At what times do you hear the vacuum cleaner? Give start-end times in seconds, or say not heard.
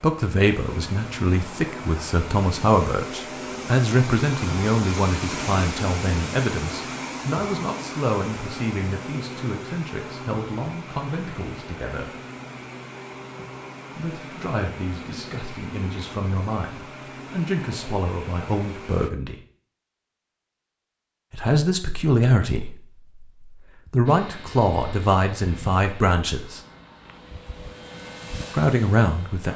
0.1-19.1, 24.1-29.5.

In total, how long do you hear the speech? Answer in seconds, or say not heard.
24 s.